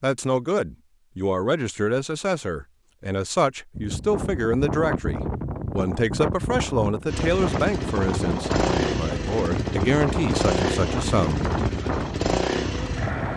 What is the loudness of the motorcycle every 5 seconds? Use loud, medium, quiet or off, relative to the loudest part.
off, loud, loud.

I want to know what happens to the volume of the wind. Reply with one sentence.
The volume of the wind stays about the same.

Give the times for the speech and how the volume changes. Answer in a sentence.
You can hear the speech from 0.0 to 11.9 s, at a steady volume.